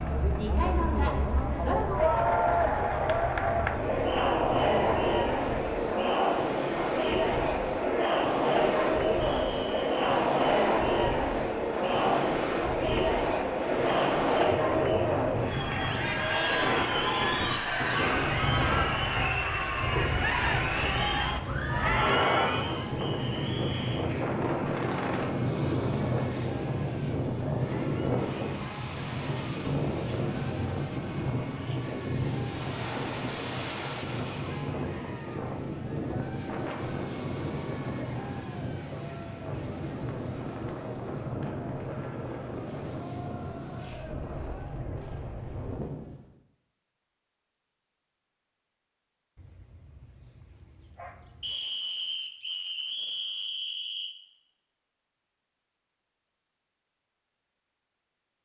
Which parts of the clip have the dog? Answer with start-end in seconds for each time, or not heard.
49.4-51.6.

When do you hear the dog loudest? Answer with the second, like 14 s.
51 s.